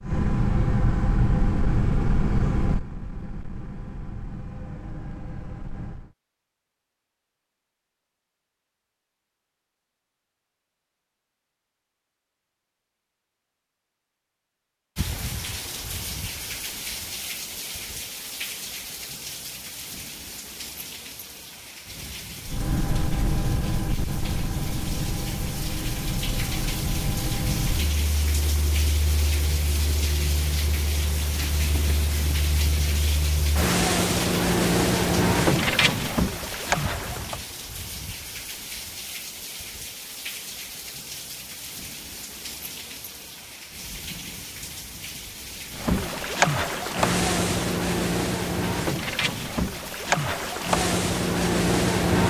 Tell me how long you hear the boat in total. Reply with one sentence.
You can hear the boat for 28 seconds altogether.